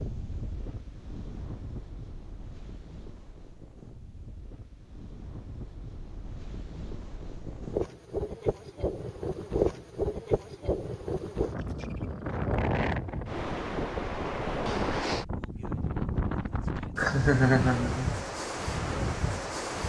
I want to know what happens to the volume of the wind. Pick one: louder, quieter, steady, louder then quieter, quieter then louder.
louder.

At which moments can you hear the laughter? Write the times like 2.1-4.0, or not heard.
16.9-18.1.